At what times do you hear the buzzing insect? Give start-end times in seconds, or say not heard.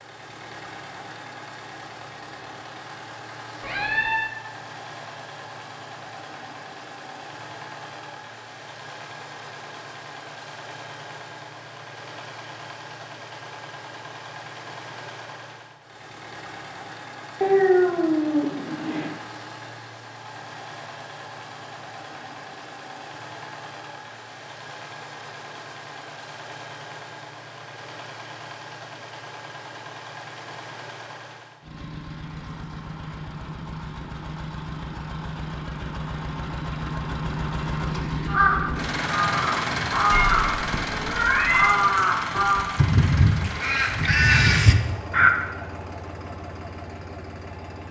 not heard.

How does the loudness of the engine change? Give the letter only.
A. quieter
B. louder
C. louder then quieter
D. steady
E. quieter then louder
B.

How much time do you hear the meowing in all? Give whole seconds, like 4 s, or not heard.
4 s.